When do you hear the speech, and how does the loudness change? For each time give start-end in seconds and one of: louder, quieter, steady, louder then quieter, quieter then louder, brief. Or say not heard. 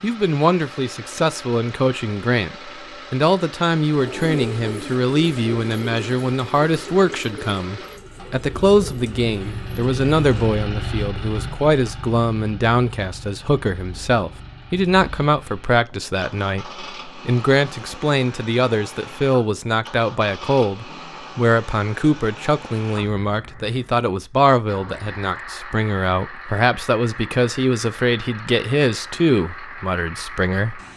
0.0-30.8 steady.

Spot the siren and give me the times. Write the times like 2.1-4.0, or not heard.
not heard.